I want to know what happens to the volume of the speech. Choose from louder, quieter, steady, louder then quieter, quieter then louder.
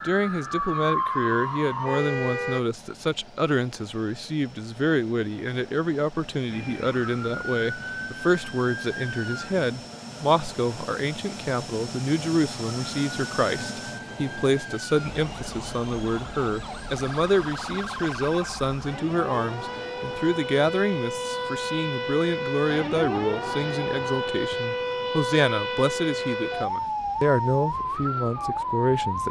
steady.